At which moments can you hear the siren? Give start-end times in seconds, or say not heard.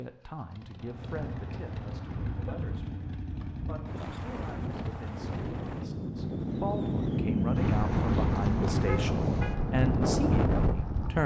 not heard.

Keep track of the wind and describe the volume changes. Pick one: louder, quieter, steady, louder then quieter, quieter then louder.
louder.